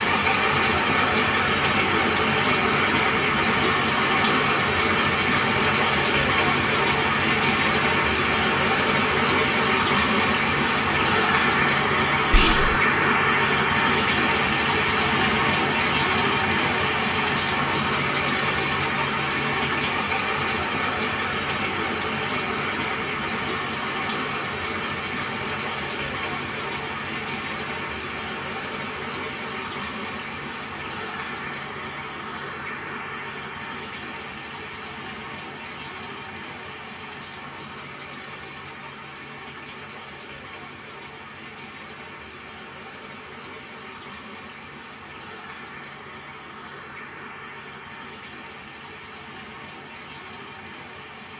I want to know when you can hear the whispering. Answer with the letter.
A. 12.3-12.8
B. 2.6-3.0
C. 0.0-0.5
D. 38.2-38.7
A.